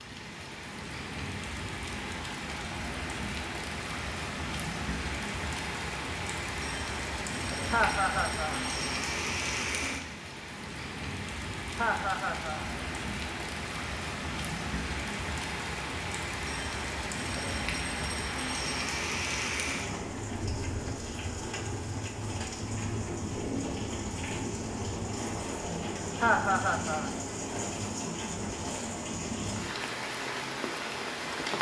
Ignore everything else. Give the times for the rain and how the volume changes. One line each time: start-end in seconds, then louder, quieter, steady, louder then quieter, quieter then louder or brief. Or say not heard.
0.0-31.5 steady.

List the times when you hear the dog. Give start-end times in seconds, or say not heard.
not heard.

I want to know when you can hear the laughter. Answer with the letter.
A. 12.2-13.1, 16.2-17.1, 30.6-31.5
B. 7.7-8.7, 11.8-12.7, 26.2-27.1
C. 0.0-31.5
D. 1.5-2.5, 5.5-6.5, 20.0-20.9
B.